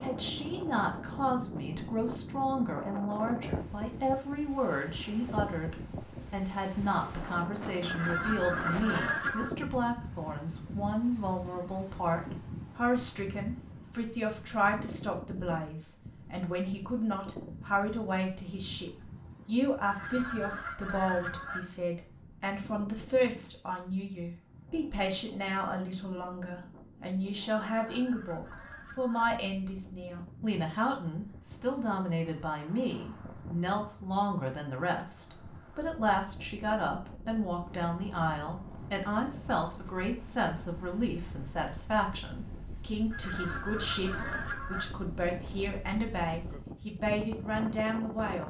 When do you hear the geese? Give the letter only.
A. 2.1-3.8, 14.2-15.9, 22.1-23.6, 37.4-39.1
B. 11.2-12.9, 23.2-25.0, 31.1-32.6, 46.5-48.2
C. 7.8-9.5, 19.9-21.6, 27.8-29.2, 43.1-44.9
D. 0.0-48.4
C.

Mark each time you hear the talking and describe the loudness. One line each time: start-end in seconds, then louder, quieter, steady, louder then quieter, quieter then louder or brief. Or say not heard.
0.0-48.4 steady.